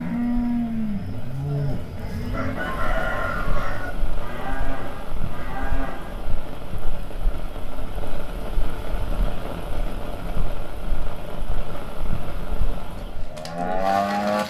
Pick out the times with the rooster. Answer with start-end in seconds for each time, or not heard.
2.3-4.0.